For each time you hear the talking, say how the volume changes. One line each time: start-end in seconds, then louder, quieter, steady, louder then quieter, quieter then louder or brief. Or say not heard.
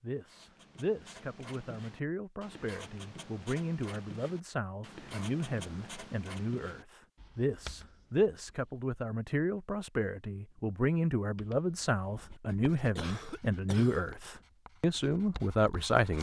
0.0-16.1 louder.